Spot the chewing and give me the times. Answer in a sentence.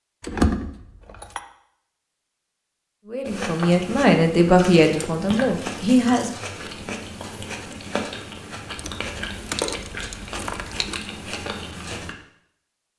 The chewing can be heard from 3.2 to 12.2 s.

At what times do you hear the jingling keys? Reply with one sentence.
You can hear the jingling keys from 0.2 to 1.4 s, from 4.5 to 6.4 s and from 8.8 to 11.0 s.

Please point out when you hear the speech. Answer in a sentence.
You can hear the speech from 3.0 to 6.3 s.